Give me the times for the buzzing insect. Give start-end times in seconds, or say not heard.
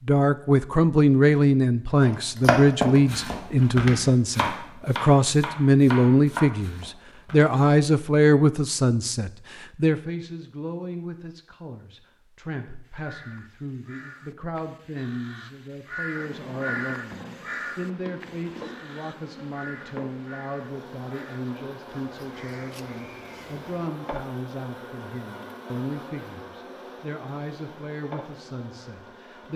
16.1-29.5.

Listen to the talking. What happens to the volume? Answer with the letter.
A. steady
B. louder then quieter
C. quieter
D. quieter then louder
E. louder
C.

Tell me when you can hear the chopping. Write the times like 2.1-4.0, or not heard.
2.0-7.5.